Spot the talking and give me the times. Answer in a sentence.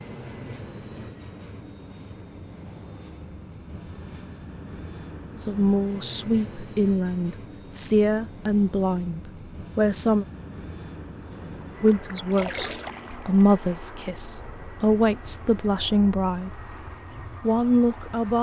You can hear the talking from 5.3 to 10.2 s, from 11.8 to 16.6 s and from 17.4 to 18.3 s.